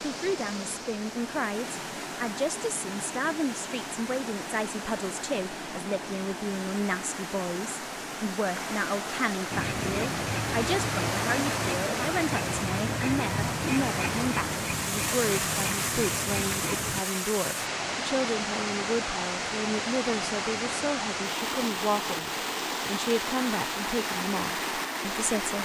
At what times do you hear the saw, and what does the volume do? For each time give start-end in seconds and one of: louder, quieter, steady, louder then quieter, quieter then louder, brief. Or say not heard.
9.5-17.1 steady.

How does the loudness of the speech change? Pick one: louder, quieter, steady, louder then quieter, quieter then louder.
steady.